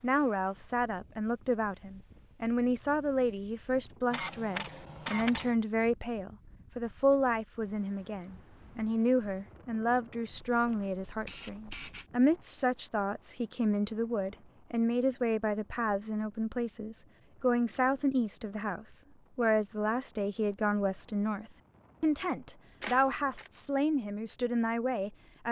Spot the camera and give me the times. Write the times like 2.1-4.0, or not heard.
4.1-5.5, 10.5-12.1, 22.8-23.5.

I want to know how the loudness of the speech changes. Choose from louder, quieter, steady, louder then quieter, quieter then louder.
steady.